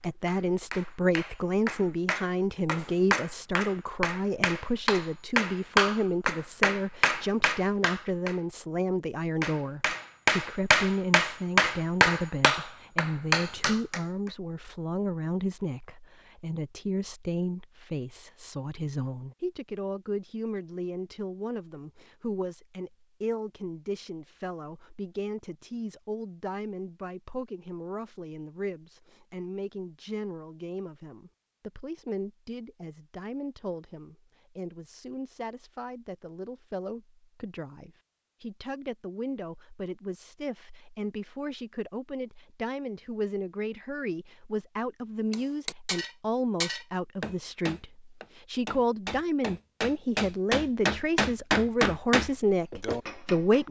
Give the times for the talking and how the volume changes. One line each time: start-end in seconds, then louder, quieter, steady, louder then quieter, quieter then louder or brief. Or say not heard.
0.0-53.6 quieter then louder.